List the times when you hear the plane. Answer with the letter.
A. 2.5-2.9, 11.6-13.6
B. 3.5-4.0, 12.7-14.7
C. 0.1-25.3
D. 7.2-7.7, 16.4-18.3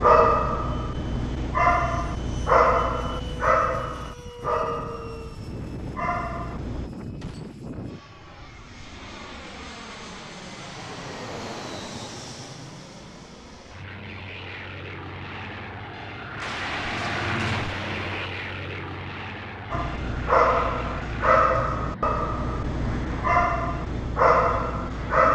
C.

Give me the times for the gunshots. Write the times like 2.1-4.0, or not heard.
7.2-7.7, 16.4-18.3.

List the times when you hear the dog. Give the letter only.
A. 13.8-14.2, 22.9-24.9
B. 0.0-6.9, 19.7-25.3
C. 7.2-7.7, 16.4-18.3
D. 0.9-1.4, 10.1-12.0
B.